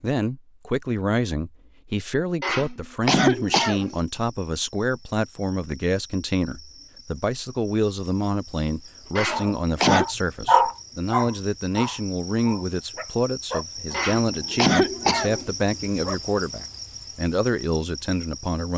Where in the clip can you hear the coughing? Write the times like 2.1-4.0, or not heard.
2.4-4.0, 9.2-10.1, 13.9-15.6.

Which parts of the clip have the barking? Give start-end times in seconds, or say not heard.
9.1-16.2.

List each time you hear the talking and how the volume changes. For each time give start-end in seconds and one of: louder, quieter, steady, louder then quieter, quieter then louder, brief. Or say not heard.
0.0-18.7 steady.